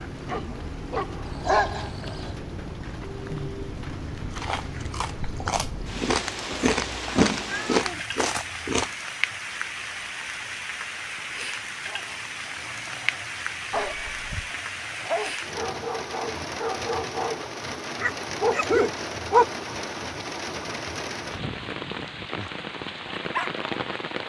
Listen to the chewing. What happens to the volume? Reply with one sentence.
The volume of the chewing goes up.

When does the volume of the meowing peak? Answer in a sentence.
The volume of the meowing peaks at 7 seconds.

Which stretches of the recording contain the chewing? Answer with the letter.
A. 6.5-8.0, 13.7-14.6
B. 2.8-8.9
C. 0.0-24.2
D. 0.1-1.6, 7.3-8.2
B.